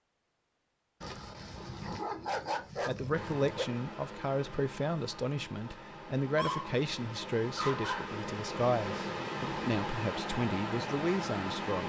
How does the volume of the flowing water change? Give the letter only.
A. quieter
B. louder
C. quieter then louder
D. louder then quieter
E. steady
B.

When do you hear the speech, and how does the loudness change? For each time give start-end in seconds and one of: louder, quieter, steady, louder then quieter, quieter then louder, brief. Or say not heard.
2.9-11.8 steady.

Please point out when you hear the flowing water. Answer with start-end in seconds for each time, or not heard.
3.1-11.8.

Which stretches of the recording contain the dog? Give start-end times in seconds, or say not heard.
1.0-3.6, 6.3-6.8, 7.5-8.1.